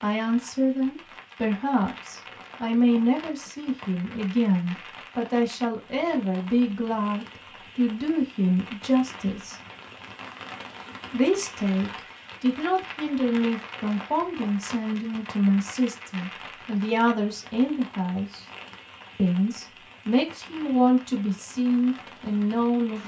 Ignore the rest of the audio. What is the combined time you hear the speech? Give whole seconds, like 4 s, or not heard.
21 s.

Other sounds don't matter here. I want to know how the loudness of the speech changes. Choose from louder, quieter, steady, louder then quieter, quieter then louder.
steady.